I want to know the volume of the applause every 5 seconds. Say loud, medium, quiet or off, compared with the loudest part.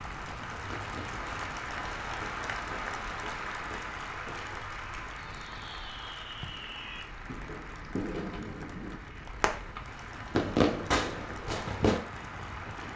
loud, medium, medium.